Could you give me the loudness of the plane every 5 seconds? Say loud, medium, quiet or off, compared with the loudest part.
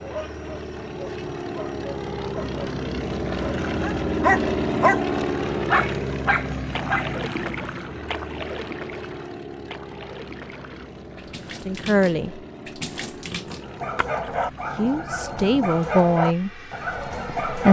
loud, loud, quiet, quiet.